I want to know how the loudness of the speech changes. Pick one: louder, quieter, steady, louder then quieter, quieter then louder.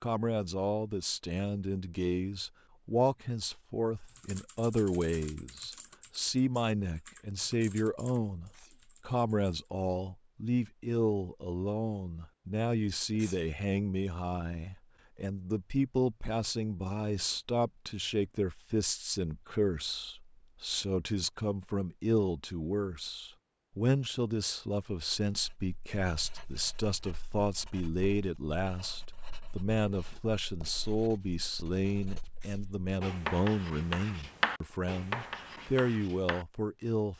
steady.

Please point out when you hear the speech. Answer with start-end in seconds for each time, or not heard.
0.0-37.1.